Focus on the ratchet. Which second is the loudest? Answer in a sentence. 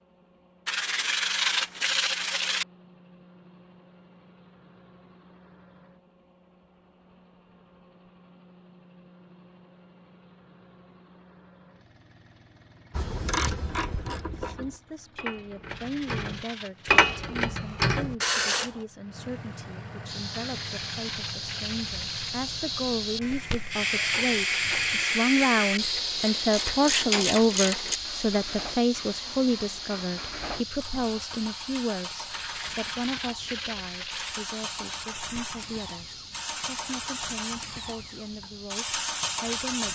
The volume of the ratchet peaks at 17 seconds.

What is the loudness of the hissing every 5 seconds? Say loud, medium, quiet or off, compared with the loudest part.
off, off, off, off, loud, loud, medium, quiet.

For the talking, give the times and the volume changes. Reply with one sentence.
You can hear the talking from 14.3 to 39.8 s, getting louder then quieter.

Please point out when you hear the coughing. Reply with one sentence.
The coughing can't be heard in this clip.